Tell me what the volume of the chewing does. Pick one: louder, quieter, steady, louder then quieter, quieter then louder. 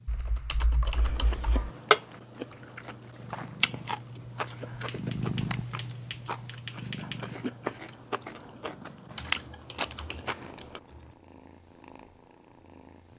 quieter then louder.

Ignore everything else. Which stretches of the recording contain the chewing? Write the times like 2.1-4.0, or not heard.
0.9-10.8.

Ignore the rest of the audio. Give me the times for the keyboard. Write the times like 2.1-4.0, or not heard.
0.1-1.7, 4.8-7.2, 9.2-11.1.